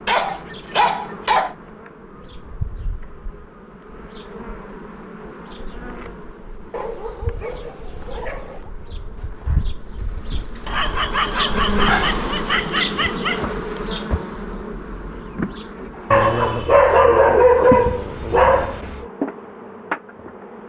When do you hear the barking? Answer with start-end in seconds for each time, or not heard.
0.1-1.6, 6.7-8.7, 10.7-13.4, 16.1-19.1.